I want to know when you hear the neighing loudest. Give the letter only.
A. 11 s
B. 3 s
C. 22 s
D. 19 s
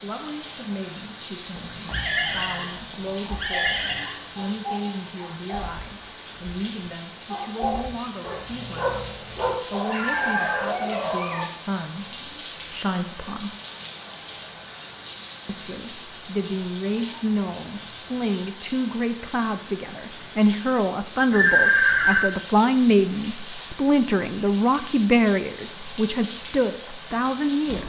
C.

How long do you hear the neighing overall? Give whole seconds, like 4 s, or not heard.
4 s.